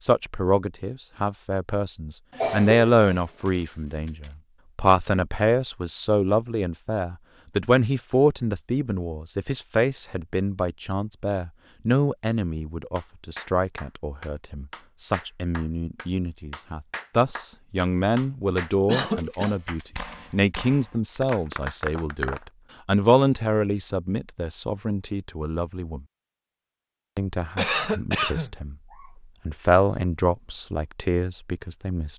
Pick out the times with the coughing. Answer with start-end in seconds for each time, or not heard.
2.3-3.2, 18.4-19.6, 27.6-29.1.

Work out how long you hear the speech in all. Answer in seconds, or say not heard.
30 s.